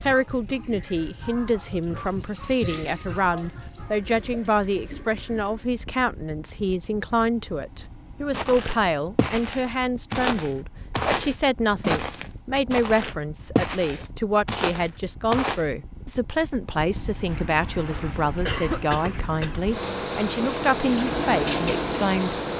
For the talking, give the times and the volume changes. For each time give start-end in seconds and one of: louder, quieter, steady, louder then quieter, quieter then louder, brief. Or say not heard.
0.0-22.4 steady.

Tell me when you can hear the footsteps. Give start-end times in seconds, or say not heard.
8.3-15.7.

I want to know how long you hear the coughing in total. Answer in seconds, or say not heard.
2 s.